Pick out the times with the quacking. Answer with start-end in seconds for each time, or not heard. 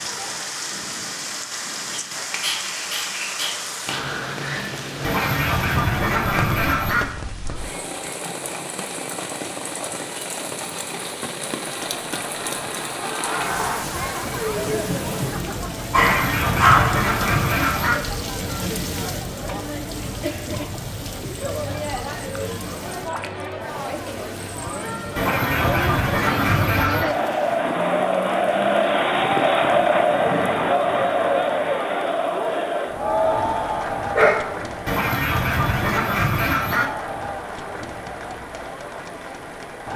5.0-7.0, 15.9-18.0, 25.1-27.1, 34.9-36.9.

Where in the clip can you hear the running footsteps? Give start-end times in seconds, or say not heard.
not heard.